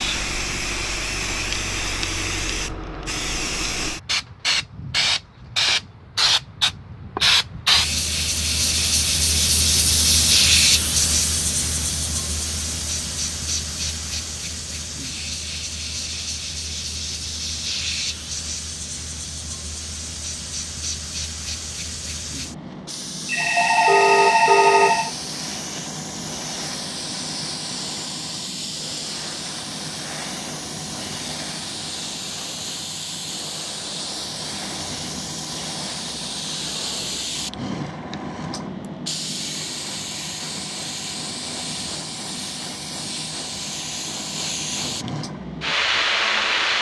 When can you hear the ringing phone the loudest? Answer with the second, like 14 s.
25 s.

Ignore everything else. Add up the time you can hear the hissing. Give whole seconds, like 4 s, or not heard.
47 s.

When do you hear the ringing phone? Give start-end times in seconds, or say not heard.
23.2-25.1.